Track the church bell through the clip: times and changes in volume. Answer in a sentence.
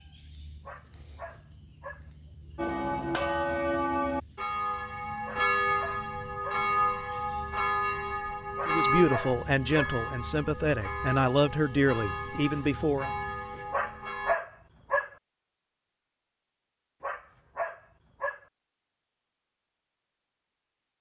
The church bell can be heard from 2.5 to 14.3 s, getting quieter.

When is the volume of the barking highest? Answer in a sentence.
The volume of the barking peaks at 14 seconds.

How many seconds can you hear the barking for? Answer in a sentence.
You can hear the barking for 7 seconds altogether.